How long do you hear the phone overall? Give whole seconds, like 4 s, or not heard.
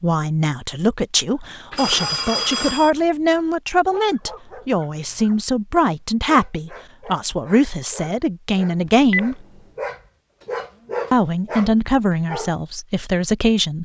2 s.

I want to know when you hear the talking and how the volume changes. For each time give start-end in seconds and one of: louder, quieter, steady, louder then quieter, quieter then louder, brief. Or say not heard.
0.0-9.3 steady
11.1-13.7 brief.